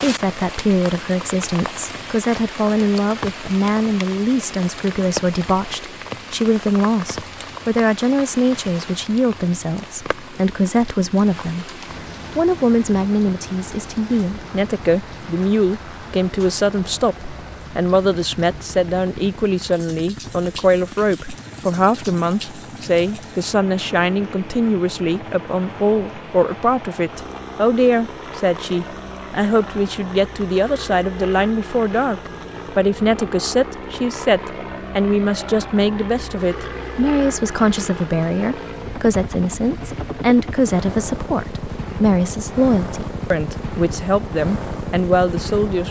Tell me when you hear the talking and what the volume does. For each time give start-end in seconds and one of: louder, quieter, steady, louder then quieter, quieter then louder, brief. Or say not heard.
0.0-45.8 steady.